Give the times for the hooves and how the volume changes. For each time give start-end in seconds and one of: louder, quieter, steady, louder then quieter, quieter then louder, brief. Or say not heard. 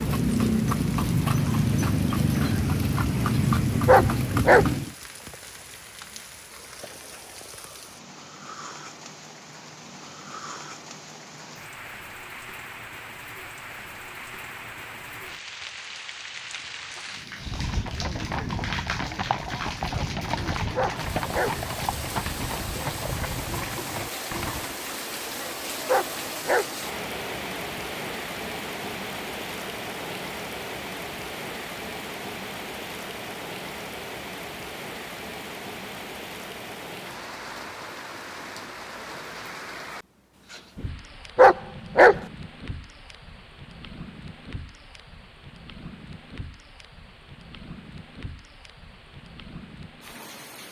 0.0-5.0 steady
17.4-24.8 steady.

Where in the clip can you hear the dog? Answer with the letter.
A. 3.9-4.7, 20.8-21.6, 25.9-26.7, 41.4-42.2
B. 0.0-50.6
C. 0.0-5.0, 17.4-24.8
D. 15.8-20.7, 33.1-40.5
A.